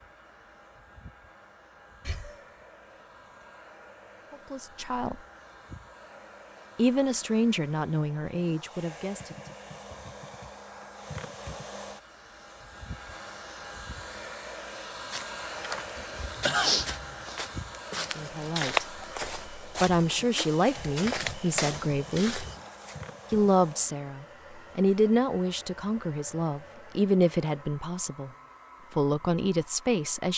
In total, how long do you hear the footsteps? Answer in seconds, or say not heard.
8 s.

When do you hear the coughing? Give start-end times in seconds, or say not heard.
2.0-2.5, 15.9-16.9.